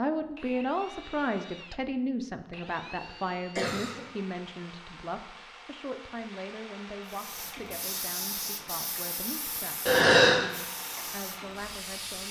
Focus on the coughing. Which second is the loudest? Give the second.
10 s.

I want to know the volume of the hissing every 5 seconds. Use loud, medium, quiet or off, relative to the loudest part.
off, loud, loud.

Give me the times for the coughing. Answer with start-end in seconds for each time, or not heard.
2.9-4.0, 9.8-10.4.